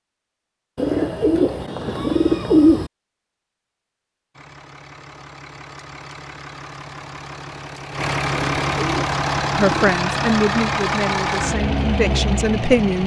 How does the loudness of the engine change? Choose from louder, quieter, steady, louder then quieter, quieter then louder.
louder.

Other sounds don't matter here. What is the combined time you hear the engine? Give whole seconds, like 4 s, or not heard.
9 s.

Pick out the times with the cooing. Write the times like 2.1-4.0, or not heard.
0.8-2.9, 8.3-9.9.